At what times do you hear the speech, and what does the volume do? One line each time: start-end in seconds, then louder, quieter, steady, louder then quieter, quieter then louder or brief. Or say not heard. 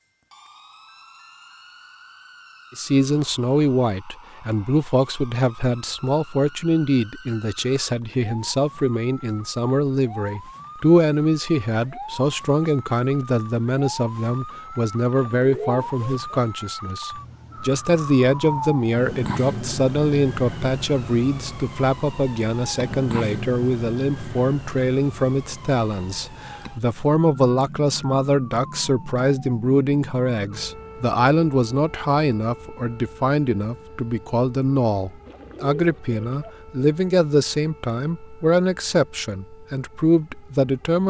2.8-41.0 steady.